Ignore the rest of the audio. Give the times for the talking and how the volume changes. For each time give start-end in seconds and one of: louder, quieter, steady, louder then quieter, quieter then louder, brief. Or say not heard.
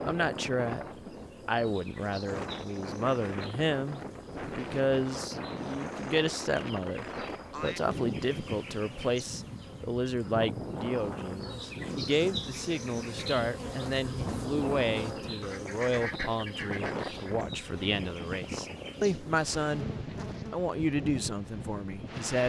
0.0-0.8 brief
1.4-19.9 steady
20.5-22.4 brief.